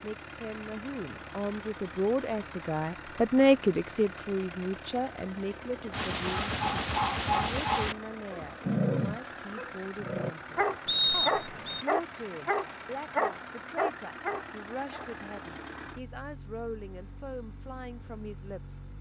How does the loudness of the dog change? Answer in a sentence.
The loudness of the dog stays about the same.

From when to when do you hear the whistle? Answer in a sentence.
The whistle can be heard from 10.8 to 11.8 s.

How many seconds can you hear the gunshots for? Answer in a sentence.
You can hear the gunshots for 2 seconds altogether.